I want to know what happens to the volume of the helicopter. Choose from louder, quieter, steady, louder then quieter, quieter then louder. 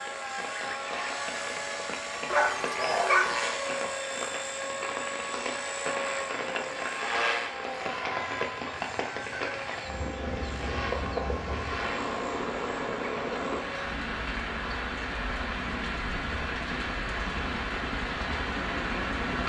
quieter.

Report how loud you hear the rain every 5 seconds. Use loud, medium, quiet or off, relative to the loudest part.
medium, loud, loud, loud.